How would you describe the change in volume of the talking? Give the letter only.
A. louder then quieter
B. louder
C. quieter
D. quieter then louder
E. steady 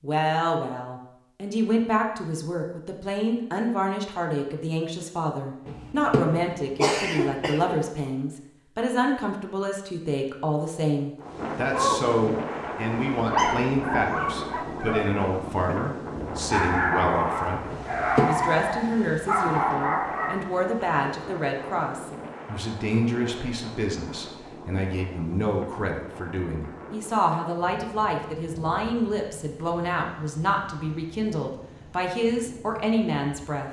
E.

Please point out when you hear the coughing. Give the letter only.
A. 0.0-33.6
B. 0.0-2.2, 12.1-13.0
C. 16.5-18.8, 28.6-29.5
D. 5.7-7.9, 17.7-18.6
D.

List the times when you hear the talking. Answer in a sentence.
The talking can be heard from 0.0 to 33.6 s.